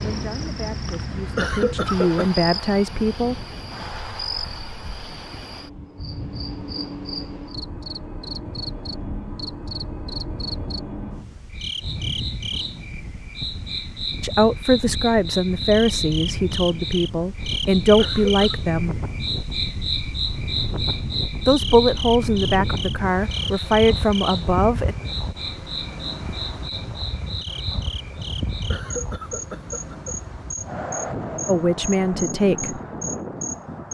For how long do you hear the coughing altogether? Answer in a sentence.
You can hear the coughing for 3 seconds altogether.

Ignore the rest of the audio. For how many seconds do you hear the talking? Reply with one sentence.
The talking can be heard for 13 seconds in total.